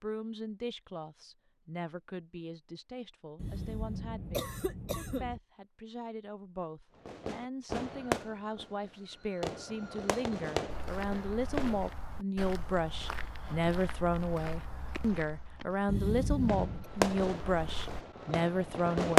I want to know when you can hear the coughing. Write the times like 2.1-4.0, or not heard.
3.4-5.4, 15.8-16.9.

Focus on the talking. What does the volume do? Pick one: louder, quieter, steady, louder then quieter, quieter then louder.
louder.